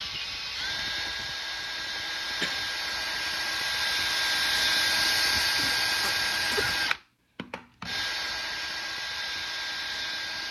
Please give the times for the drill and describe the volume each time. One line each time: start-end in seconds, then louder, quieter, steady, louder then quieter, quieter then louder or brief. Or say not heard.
0.0-10.4 louder then quieter.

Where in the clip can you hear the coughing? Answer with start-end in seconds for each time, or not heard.
1.9-2.6, 5.5-6.8.